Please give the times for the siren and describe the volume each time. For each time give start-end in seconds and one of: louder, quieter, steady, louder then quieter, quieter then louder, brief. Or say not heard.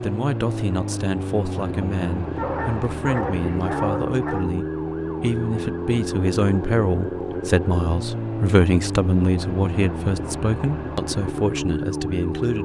0.0-12.6 steady.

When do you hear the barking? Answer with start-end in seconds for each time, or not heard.
2.4-4.5.